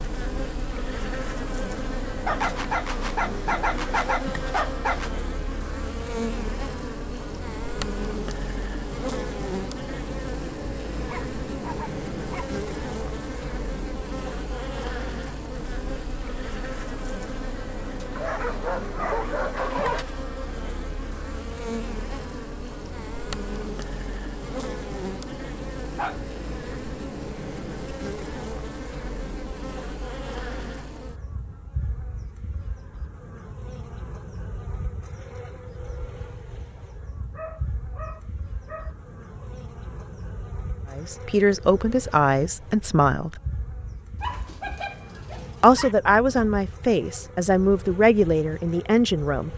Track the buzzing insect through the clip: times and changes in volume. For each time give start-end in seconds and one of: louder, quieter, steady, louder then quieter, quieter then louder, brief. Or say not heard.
0.0-49.5 quieter.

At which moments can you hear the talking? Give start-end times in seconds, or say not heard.
40.9-43.4, 45.6-49.5.